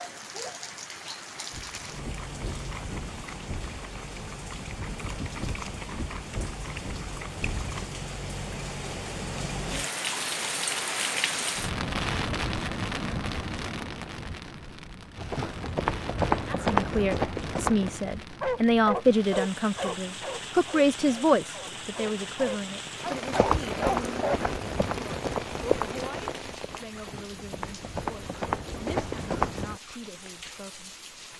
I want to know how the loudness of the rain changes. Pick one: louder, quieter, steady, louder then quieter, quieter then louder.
louder then quieter.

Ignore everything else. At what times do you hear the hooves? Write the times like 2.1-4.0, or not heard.
1.5-7.8, 15.2-18.0, 23.3-29.8.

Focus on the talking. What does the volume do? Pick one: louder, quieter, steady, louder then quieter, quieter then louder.
quieter.